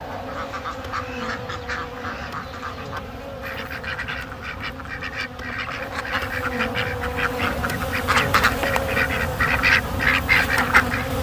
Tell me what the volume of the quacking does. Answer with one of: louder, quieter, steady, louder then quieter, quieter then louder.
louder.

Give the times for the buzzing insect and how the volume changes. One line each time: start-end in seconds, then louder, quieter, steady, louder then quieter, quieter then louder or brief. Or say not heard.
0.0-11.1 louder.